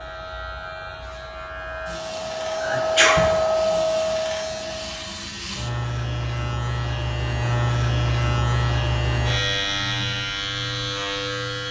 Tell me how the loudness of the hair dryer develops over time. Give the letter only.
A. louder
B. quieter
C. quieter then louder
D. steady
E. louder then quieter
E.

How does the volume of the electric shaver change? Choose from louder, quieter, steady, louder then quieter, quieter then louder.
louder.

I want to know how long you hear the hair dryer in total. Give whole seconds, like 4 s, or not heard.
5 s.